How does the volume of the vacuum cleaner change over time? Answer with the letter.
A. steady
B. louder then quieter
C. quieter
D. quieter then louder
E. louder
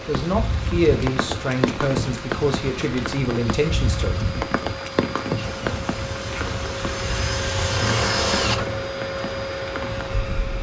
E.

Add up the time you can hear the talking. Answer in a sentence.
You can hear the talking for 4 seconds altogether.